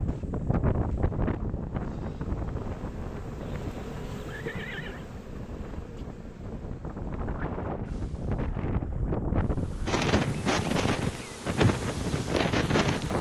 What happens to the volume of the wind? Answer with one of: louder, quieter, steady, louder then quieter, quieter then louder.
quieter then louder.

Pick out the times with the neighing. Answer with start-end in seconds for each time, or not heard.
3.4-5.0.